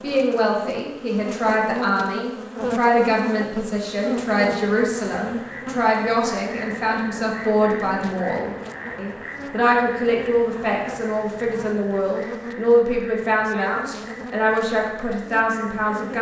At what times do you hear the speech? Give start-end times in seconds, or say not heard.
0.0-16.1.